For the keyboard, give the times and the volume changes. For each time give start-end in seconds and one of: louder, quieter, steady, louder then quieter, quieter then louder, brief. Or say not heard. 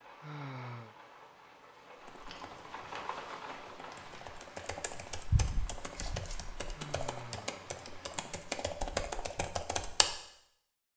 2.0-10.2 louder.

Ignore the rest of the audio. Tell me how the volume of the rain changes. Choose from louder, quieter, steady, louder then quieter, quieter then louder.
louder then quieter.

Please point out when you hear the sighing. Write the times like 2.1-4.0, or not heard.
0.2-0.9, 6.7-8.2.